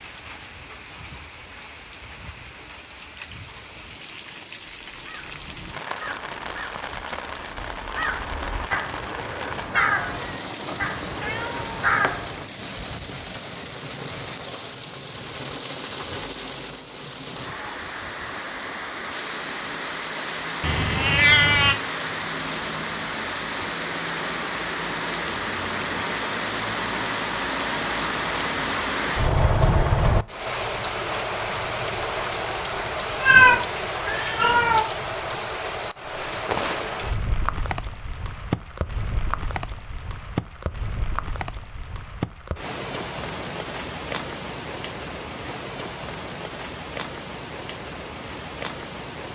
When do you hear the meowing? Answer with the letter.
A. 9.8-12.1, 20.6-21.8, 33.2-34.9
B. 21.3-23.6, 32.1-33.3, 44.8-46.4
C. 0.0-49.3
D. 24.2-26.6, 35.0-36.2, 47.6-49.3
A.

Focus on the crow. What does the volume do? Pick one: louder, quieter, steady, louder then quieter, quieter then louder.
louder.